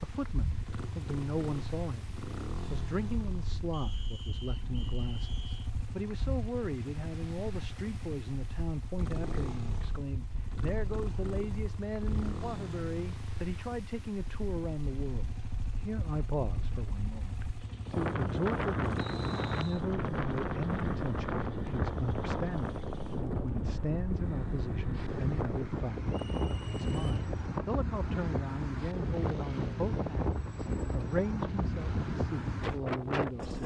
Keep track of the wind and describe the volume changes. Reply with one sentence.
The loudness of the wind goes up.